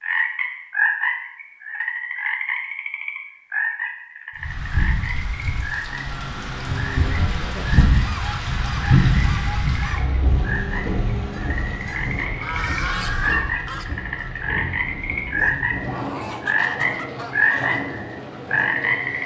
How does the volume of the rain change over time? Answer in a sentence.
The loudness of the rain goes up, then down.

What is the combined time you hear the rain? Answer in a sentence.
You can hear the rain for 15 seconds altogether.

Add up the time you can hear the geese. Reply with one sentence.
The geese can be heard for 12 seconds in total.